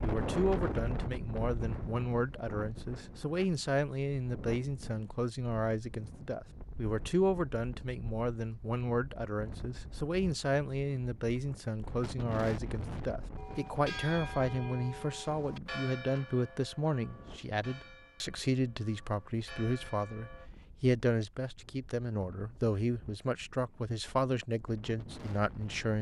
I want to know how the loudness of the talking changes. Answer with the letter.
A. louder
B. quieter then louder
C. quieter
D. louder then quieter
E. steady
E.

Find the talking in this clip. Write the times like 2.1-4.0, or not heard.
0.0-25.9.